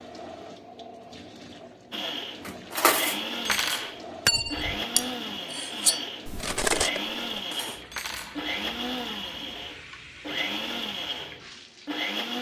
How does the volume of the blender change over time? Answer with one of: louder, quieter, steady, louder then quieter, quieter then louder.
steady.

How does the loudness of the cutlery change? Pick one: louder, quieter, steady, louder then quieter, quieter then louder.
quieter.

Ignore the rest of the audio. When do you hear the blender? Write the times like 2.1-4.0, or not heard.
1.9-12.3.